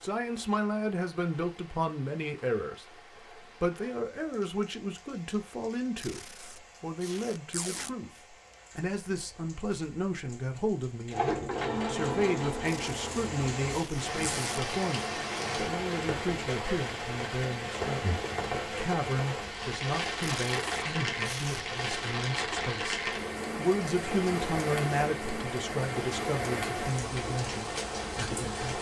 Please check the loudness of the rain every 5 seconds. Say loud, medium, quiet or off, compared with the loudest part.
quiet, quiet, medium, loud, loud, loud.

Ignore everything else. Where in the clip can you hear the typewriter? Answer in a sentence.
You can't hear the typewriter here.